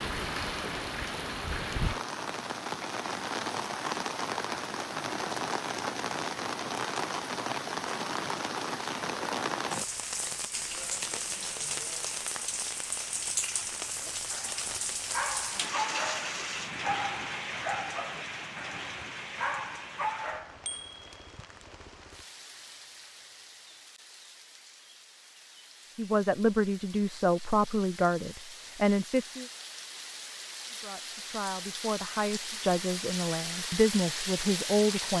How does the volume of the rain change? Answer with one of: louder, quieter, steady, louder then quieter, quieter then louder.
quieter then louder.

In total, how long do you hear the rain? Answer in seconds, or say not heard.
35 s.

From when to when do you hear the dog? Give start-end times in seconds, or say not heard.
14.0-20.6.